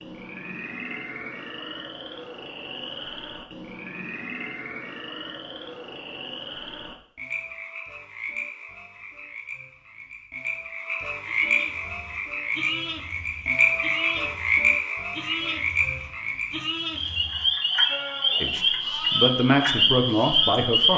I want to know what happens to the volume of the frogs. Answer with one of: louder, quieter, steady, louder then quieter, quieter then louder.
louder.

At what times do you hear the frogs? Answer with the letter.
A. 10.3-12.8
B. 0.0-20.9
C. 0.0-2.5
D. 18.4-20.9
B.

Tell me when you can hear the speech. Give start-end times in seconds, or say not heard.
18.4-20.9.